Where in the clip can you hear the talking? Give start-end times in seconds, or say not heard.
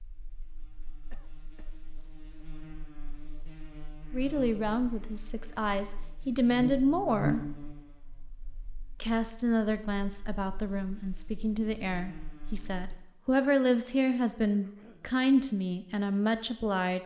4.1-7.4, 9.0-17.0.